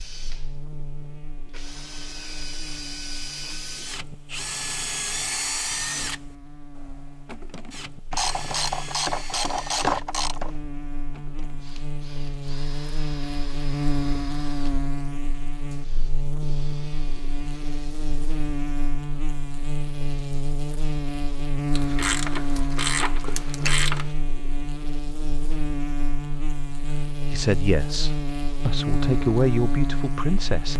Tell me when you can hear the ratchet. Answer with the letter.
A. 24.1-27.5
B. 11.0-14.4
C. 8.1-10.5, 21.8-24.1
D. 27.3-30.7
C.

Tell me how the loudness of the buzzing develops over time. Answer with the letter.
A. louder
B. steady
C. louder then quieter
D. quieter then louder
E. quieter
A.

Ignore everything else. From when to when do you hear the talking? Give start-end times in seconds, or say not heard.
27.3-30.7.